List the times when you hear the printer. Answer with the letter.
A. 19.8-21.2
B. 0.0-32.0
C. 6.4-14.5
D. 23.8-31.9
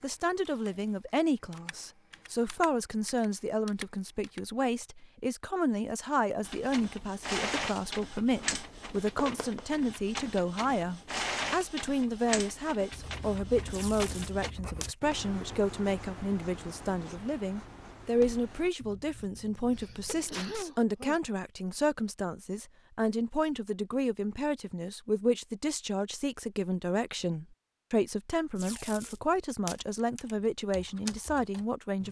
C.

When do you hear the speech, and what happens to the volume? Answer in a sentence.
You can hear the speech from 0.0 to 32.0 s, at a steady volume.